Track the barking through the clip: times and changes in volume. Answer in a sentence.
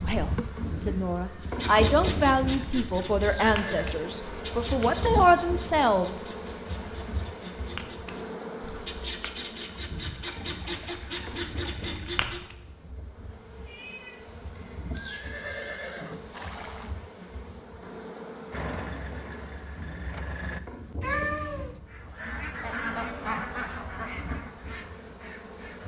You can't hear the barking here.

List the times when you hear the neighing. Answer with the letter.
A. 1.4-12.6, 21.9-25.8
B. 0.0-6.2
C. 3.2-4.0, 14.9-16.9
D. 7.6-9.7
C.